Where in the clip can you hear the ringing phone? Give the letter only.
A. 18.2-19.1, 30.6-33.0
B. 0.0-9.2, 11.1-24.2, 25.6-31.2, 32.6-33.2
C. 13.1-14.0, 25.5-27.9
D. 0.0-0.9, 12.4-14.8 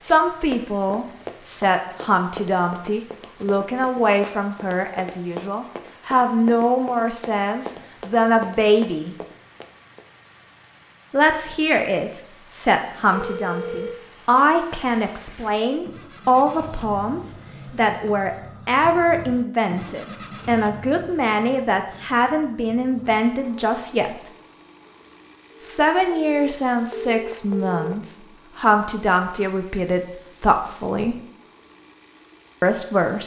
C.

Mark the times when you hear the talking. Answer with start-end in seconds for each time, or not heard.
0.0-9.2, 11.1-24.2, 25.6-31.2, 32.6-33.2.